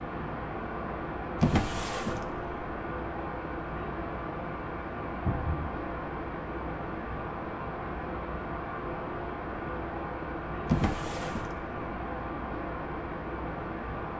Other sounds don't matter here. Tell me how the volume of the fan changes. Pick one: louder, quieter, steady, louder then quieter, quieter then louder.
steady.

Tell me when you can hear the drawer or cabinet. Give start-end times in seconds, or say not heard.
1.4-2.5, 5.2-5.7, 10.7-11.7.